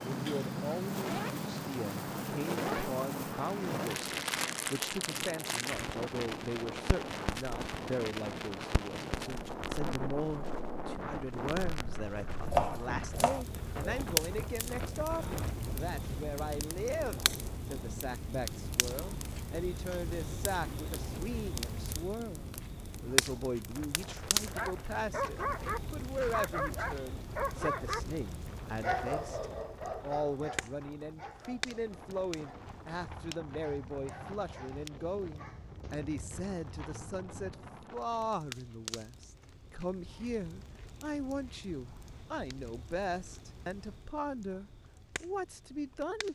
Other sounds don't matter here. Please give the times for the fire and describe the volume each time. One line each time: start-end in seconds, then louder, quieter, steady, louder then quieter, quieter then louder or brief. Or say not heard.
0.0-46.2 quieter.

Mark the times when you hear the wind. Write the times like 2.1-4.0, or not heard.
0.0-38.3.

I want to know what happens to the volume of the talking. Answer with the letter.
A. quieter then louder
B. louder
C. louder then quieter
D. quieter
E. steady
E.